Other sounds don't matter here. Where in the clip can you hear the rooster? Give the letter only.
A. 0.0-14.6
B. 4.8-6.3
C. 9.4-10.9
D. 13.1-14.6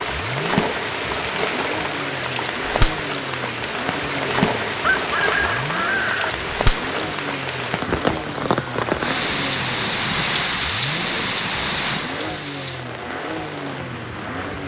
B.